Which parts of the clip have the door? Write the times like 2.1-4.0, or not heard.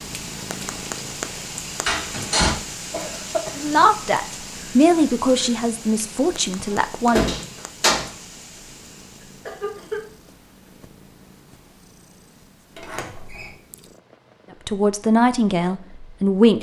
1.9-2.5, 6.7-8.1, 12.8-13.5.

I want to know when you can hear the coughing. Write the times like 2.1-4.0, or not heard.
2.9-3.5, 9.2-10.1.